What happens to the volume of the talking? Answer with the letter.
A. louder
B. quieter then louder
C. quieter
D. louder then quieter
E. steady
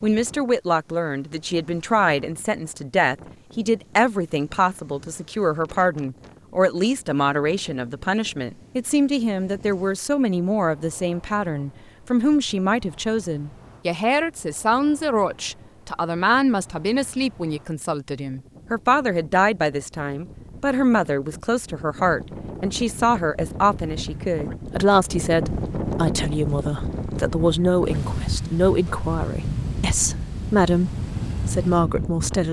E.